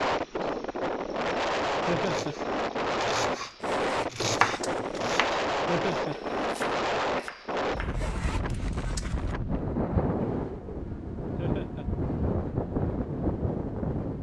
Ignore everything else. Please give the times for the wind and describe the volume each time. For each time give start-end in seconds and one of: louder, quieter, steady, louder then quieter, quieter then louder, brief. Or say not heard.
0.0-14.1 steady.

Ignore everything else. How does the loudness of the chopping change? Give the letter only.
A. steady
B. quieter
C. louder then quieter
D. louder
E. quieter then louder
C.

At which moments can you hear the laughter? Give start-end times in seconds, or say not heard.
1.9-2.4, 5.7-6.2, 11.3-11.8.